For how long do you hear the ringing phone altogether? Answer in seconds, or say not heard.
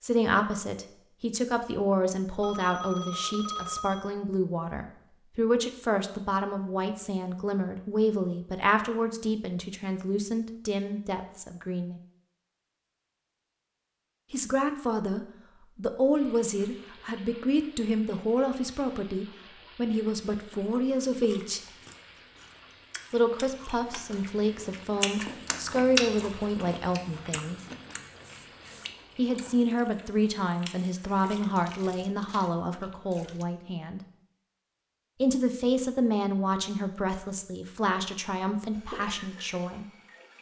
2 s.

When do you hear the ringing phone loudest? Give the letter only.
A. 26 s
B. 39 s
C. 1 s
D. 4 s
D.